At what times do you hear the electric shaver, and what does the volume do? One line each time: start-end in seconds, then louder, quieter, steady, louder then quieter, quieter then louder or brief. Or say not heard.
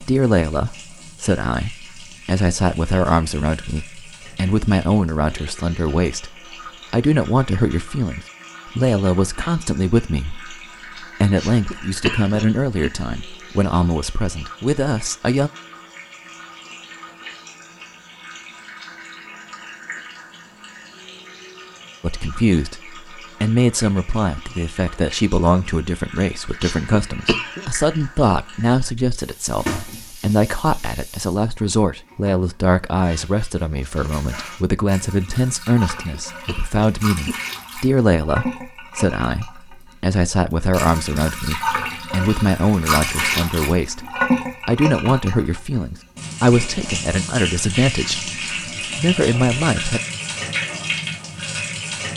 not heard.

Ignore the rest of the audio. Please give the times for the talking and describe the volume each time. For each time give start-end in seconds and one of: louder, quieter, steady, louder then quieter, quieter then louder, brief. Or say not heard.
0.0-15.5 steady
22.0-48.3 steady
49.0-50.0 brief.